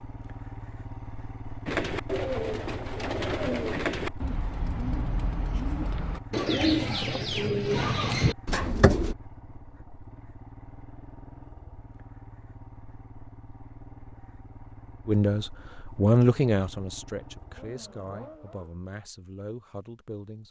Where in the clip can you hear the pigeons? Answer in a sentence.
The pigeons can be heard from 1.6 to 9.2 s.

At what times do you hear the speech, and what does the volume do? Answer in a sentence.
You can hear the speech from 15.1 to 20.4 s, getting quieter.